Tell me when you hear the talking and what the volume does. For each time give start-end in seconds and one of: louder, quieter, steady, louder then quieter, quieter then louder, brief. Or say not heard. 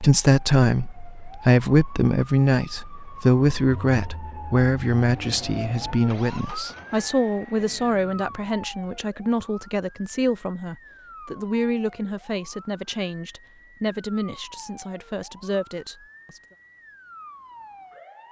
0.0-16.4 quieter.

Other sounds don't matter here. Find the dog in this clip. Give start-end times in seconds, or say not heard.
not heard.